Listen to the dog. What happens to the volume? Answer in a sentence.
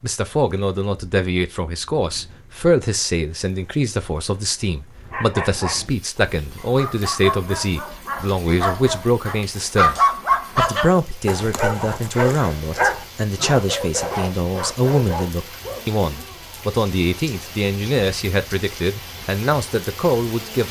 The loudness of the dog goes up, then down.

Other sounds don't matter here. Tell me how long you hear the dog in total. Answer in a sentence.
The dog can be heard for 11 seconds in total.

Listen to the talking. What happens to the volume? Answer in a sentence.
The volume of the talking stays about the same.